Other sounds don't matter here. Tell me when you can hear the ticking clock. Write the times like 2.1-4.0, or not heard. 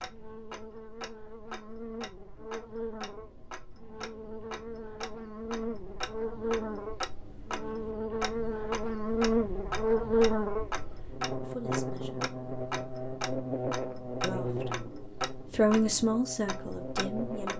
0.0-17.5.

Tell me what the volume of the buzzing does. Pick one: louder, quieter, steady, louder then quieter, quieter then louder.
louder then quieter.